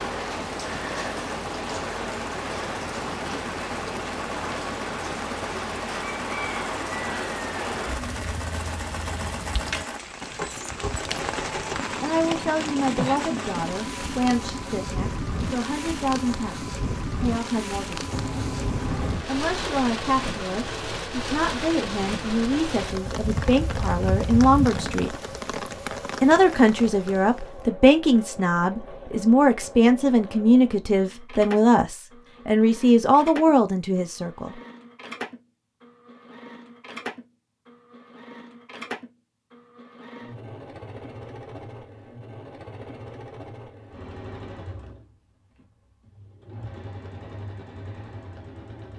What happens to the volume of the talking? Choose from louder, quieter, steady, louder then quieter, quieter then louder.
louder.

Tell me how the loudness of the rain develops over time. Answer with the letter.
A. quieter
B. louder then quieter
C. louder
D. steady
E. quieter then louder
D.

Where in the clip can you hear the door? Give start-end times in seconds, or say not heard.
18.1-19.2.